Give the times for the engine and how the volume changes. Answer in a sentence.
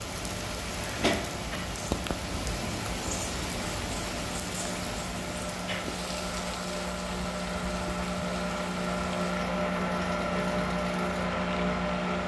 The engine can be heard from 0.0 to 12.2 s, getting louder.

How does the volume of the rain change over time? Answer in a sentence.
The loudness of the rain goes down.